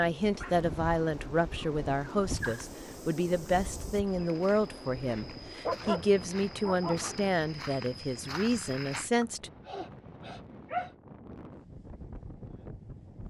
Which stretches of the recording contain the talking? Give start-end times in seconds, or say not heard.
0.0-9.5.